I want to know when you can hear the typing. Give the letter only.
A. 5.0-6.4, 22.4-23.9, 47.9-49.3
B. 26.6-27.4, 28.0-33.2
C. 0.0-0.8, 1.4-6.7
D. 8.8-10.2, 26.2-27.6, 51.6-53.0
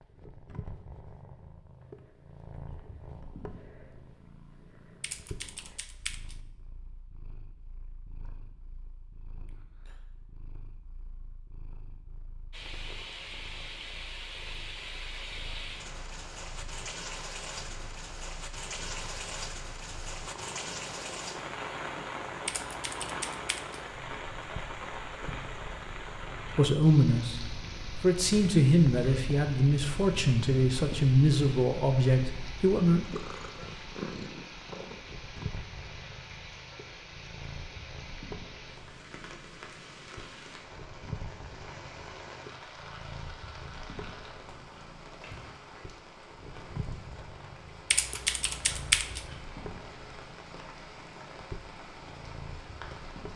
A.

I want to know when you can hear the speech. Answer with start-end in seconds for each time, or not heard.
26.6-27.4, 28.0-33.2.